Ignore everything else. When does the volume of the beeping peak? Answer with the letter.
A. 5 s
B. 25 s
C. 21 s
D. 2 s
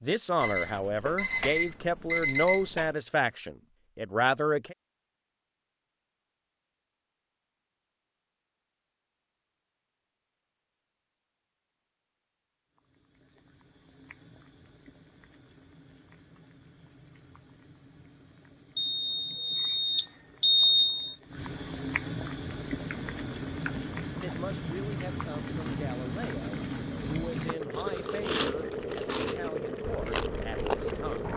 C.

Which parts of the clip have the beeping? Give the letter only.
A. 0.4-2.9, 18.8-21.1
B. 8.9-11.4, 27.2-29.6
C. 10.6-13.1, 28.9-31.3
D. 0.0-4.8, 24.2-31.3
A.